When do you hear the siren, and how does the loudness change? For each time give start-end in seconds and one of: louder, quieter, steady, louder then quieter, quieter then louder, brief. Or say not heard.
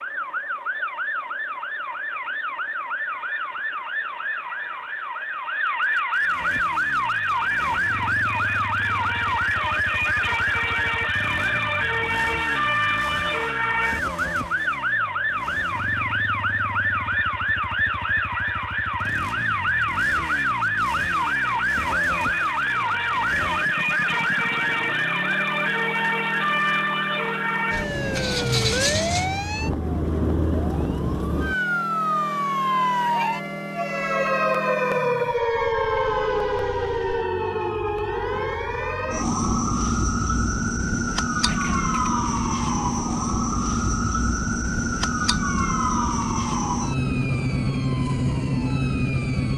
0.0-49.5 steady.